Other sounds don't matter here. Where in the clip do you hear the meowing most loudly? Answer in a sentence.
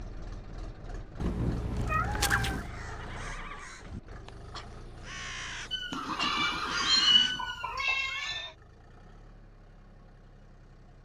The volume of the meowing peaks at 7 seconds.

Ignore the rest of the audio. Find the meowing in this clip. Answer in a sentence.
You can hear the meowing from 1.2 to 2.7 s and from 5.7 to 8.4 s.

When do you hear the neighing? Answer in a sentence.
You can hear the neighing from 2.8 to 3.7 s and from 5.9 to 8.6 s.